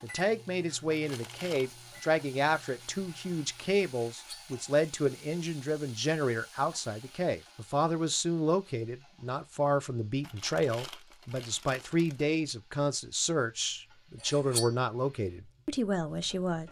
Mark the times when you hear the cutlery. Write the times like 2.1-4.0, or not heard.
4.0-4.5, 14.2-14.7.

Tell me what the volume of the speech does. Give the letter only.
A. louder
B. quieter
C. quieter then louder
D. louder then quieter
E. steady
E.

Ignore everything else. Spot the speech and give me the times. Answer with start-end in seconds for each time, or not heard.
0.0-16.6.